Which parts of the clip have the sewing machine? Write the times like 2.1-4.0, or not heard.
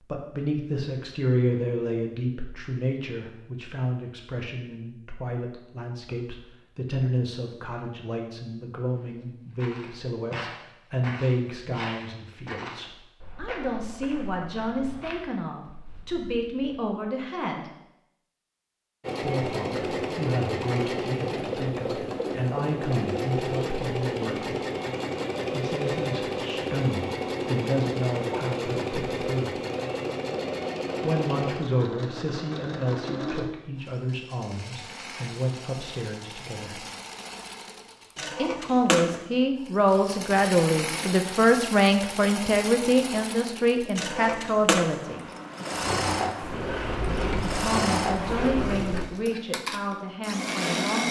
19.0-51.0.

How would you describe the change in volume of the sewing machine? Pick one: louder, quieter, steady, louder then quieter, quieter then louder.
quieter then louder.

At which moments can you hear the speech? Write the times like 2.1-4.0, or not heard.
0.1-17.7, 19.2-24.6, 25.5-29.6, 31.0-36.9, 38.4-45.2, 47.6-51.0.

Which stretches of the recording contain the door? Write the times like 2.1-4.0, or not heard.
46.4-49.0.